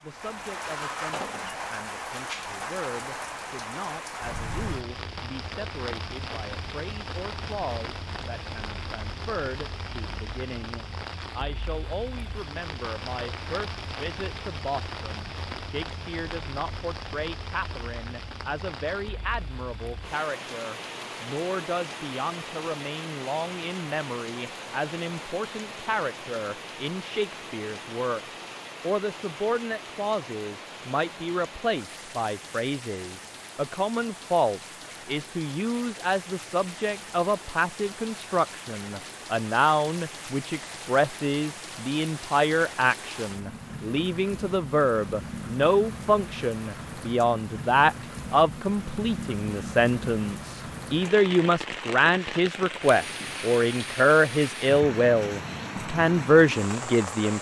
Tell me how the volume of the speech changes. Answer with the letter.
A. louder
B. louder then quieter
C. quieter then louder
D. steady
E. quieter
A.